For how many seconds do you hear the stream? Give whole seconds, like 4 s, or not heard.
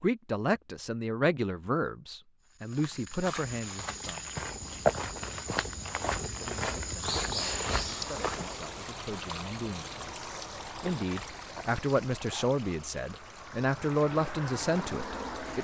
8 s.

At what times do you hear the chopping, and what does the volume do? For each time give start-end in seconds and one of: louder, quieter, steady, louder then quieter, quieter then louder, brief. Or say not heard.
not heard.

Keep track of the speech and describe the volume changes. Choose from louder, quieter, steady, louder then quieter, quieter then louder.
quieter then louder.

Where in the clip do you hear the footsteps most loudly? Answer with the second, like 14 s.
5 s.